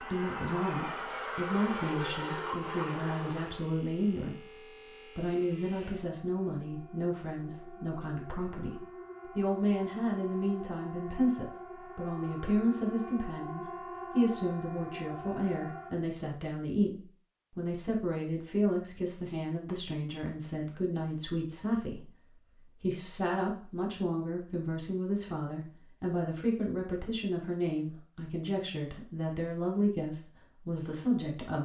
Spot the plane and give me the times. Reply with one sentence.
You can hear the plane from 0.0 to 3.7 s.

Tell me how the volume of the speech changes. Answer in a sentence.
The loudness of the speech stays about the same.